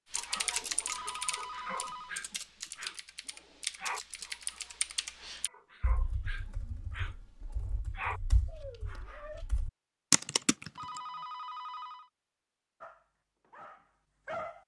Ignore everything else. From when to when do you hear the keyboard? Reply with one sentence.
You can hear the keyboard from 0.1 to 11.0 s.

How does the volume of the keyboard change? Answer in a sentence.
The volume of the keyboard goes down, then up.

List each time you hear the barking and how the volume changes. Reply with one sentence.
The barking can be heard from 0.1 to 9.4 s, getting quieter then louder; and briefly from 12.8 to 14.6 s.